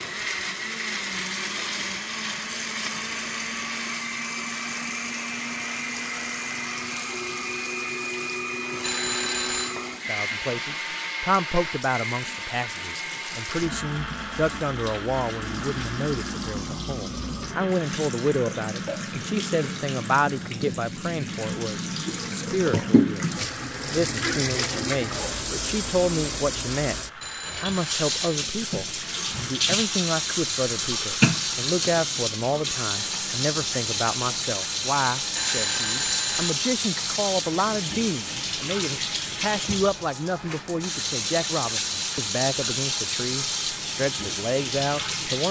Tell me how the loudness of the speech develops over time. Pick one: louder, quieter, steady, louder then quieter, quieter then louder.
steady.